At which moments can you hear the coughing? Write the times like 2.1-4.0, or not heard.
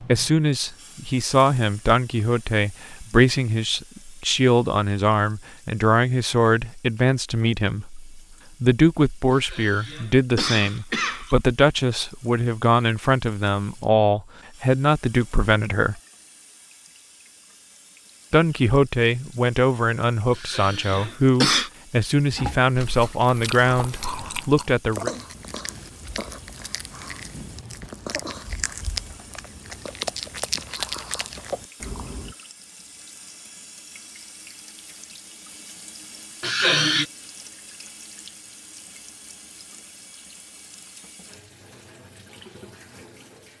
9.3-11.3, 20.4-21.7, 36.4-37.0.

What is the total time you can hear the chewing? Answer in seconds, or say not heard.
10 s.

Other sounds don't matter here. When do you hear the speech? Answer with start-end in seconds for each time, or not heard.
0.0-15.9, 18.3-25.1.